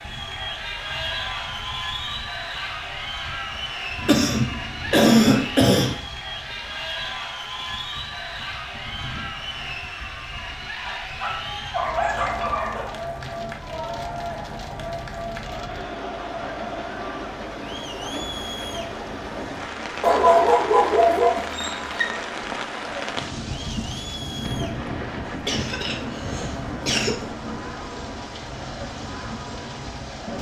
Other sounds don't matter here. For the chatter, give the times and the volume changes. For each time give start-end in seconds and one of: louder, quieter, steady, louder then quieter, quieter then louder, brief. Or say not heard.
0.0-30.3 quieter.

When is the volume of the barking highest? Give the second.
20 s.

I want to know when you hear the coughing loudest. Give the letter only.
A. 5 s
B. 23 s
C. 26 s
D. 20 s
A.